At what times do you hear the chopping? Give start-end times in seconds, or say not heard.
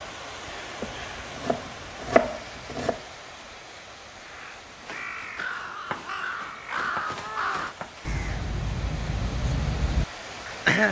0.8-3.0, 5.8-8.1.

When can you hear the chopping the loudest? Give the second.
2 s.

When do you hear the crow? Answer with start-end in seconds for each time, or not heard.
4.2-10.8.